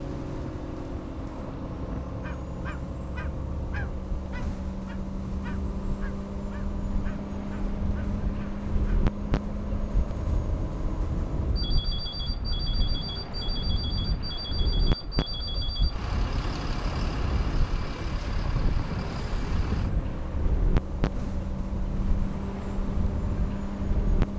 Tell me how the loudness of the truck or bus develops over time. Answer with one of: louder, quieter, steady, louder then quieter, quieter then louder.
steady.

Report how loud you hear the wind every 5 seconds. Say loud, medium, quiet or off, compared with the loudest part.
medium, loud, loud, loud, loud.